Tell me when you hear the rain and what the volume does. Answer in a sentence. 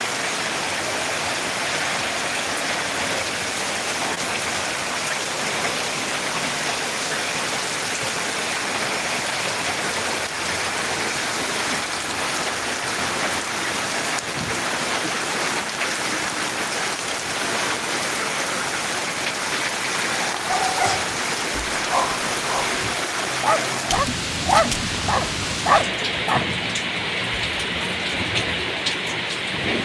You can hear the rain from 0.0 to 29.8 s, at a steady volume.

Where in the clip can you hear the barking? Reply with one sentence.
You can hear the barking from 20.1 to 26.4 s.